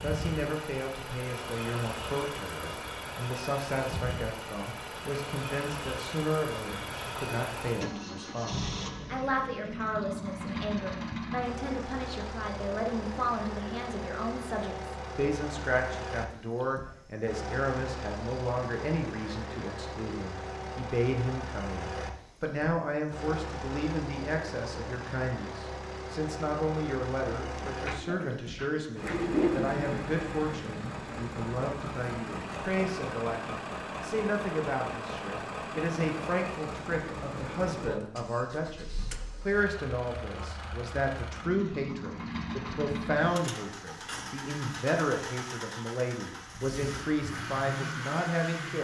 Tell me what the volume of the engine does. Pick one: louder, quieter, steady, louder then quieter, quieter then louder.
steady.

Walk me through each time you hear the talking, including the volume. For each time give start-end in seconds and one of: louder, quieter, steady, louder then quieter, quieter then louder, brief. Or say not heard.
0.0-48.8 steady.